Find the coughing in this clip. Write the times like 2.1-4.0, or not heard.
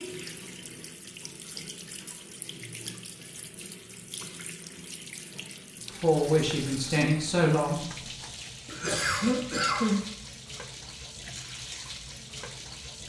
8.7-10.0.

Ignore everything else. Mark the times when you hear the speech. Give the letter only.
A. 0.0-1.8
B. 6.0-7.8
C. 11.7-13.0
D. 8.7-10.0
B.